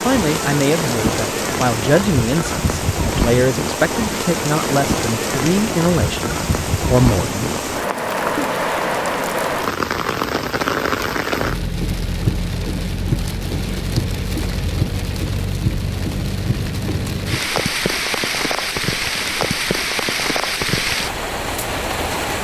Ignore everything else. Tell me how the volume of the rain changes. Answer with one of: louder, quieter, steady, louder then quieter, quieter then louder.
steady.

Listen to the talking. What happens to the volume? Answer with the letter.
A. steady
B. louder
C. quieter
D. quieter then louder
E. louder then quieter
A.